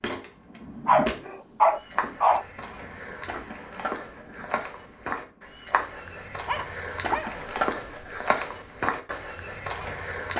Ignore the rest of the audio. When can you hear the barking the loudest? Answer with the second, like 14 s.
2 s.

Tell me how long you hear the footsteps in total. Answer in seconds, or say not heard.
10 s.